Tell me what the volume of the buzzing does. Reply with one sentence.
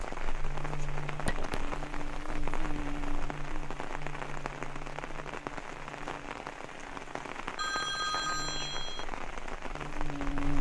The loudness of the buzzing goes down, then up.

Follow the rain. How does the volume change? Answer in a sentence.
The loudness of the rain stays about the same.